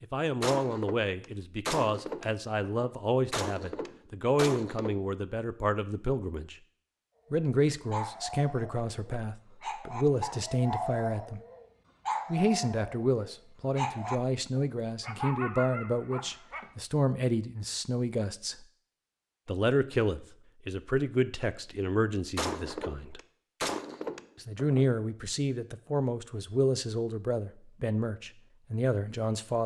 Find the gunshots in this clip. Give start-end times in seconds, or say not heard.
0.4-5.0, 22.4-24.9.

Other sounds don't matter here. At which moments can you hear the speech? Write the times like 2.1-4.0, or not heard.
0.0-6.5, 7.3-11.4, 12.3-18.6, 19.4-23.2, 24.4-29.6.